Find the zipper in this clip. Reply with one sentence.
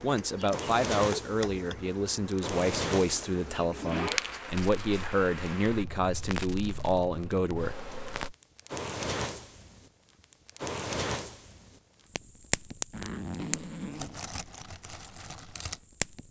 You can hear the zipper from 3.0 to 4.2 s and from 12.9 to 14.2 s.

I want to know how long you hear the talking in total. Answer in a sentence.
The talking can be heard for 8 seconds in total.